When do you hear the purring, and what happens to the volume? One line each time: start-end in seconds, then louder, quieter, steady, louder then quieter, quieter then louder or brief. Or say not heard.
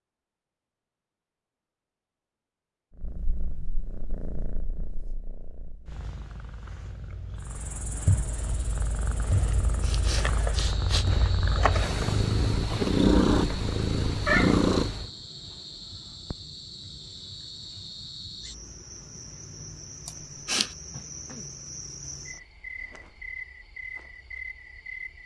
3.0-15.1 louder.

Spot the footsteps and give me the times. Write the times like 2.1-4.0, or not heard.
not heard.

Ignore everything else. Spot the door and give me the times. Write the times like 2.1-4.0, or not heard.
not heard.